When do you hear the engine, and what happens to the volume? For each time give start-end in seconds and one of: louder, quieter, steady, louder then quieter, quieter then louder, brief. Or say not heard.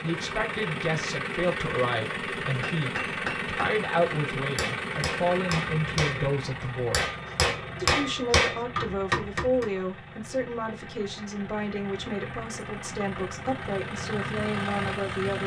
0.0-15.4 quieter then louder.